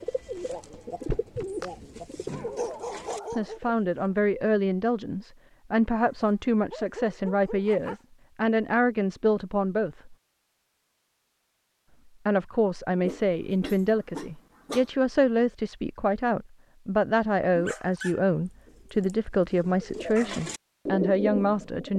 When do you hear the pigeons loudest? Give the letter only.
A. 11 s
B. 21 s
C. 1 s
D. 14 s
B.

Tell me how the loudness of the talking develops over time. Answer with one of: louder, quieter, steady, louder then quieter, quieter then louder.
steady.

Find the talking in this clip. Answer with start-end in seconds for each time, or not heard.
3.3-10.2, 12.2-21.9.